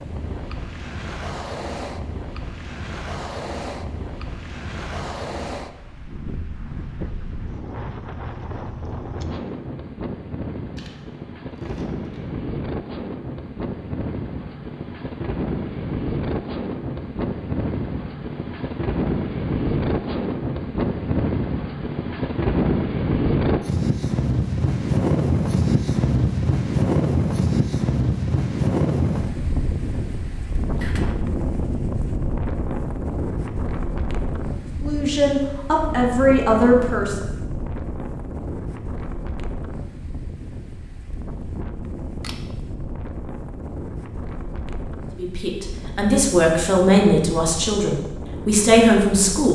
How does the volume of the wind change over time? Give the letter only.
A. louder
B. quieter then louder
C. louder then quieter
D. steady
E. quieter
C.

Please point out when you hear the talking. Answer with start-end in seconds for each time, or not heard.
34.8-37.1, 45.1-49.5.